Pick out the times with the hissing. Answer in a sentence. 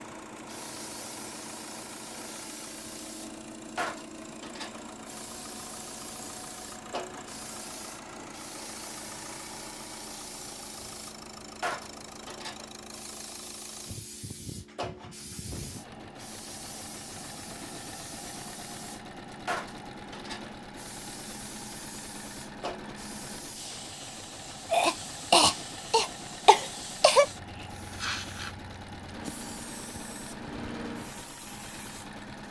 The hissing can be heard from 0.1 to 32.2 s.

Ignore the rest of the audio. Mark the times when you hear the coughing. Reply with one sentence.
The coughing can be heard from 24.7 to 27.2 s.